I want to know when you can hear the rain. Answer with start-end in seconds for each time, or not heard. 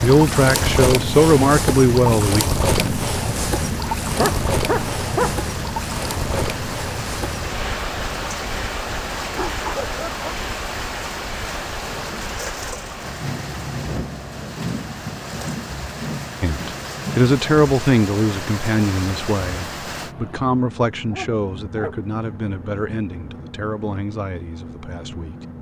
0.0-20.1.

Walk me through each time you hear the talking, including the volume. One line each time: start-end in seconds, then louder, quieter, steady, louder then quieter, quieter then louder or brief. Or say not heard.
0.0-2.5 brief
16.4-25.5 quieter.